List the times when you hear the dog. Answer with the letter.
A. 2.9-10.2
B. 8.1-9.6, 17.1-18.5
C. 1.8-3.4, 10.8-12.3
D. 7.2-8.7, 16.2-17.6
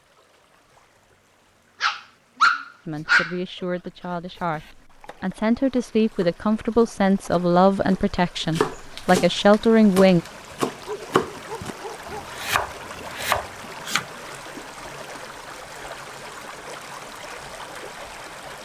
C.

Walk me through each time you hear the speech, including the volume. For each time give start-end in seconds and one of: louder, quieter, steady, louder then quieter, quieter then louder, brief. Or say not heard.
2.9-10.2 louder.